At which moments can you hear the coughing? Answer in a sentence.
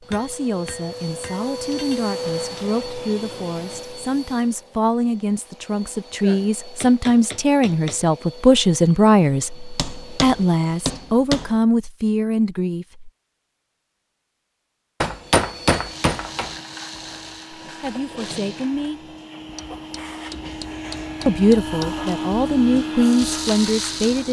The coughing can't be heard in this clip.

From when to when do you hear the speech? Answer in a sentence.
You can hear the speech from 0.0 to 13.1 s, from 17.6 to 19.1 s and from 21.2 to 24.2 s.